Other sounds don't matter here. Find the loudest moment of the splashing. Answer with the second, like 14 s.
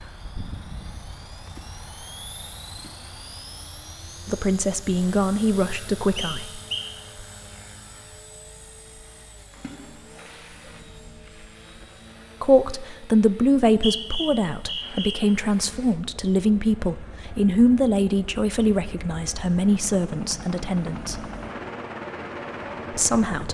10 s.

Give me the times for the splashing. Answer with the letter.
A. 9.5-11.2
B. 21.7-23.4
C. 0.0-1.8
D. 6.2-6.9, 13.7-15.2
A.